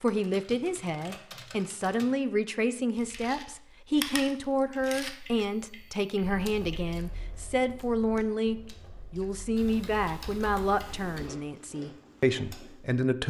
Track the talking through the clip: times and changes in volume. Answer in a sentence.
The talking can be heard from 0.0 to 13.2 s, at a steady volume.